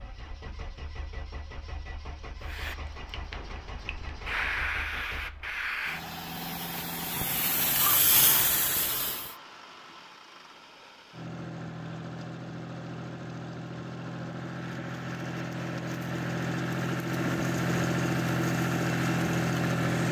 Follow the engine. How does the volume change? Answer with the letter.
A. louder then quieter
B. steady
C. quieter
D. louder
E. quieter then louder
D.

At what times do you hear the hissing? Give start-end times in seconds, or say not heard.
2.4-9.3.